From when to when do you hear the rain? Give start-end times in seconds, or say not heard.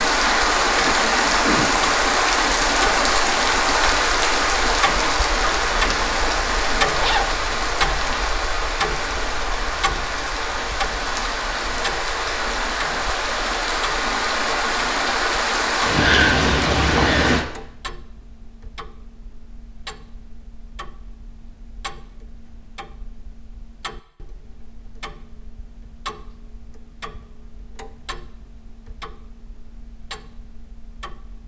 0.0-17.4.